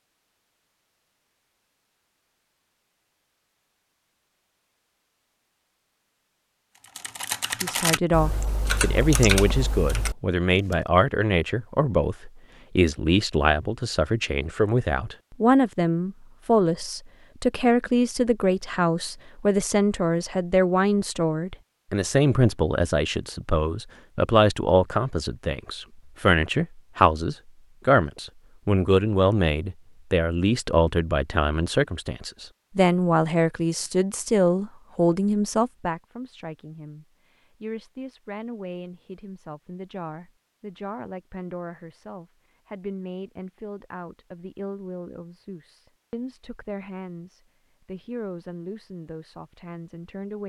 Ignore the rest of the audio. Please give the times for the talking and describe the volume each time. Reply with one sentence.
You can hear the talking from 7.6 to 50.4 s, getting quieter.